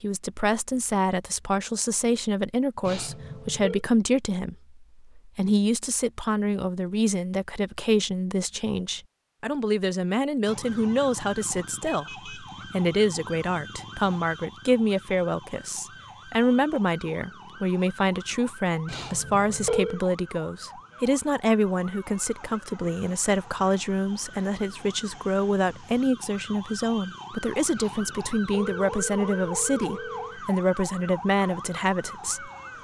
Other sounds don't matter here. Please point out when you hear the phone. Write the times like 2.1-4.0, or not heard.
2.8-3.9, 18.9-20.0, 27.8-30.4.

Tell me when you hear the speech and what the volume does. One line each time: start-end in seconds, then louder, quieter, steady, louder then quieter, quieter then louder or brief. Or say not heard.
0.0-32.5 steady.